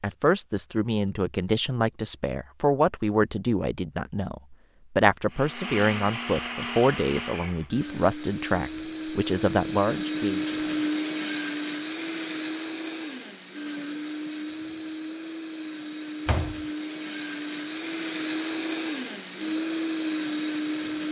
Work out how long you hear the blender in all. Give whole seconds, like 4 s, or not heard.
16 s.